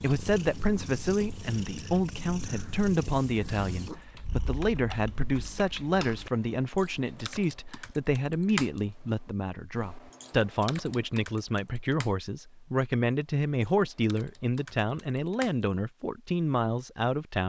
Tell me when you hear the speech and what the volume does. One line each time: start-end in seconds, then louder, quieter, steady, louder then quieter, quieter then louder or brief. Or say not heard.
0.0-17.4 steady.